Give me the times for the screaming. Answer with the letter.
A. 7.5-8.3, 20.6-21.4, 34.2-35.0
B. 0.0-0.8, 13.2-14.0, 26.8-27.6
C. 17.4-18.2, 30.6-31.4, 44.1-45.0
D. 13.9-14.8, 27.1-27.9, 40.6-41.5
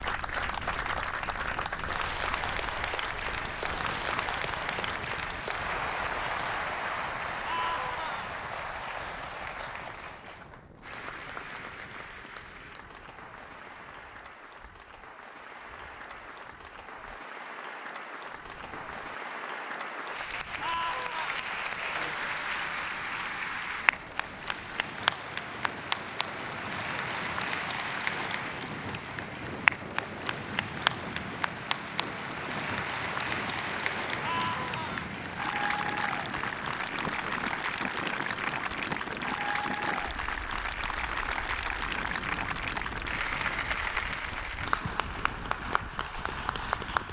A.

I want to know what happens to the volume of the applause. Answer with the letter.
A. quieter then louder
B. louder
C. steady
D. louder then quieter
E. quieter
A.